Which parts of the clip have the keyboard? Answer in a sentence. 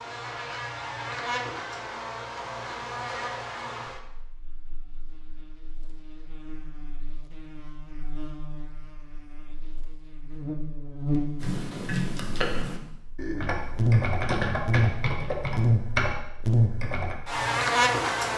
The keyboard can be heard from 11.4 to 17.1 s.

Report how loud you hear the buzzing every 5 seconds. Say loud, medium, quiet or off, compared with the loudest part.
medium, quiet, loud, loud.